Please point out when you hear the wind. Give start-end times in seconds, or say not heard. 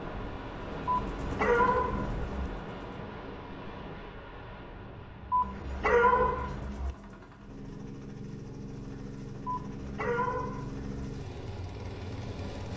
0.0-6.7.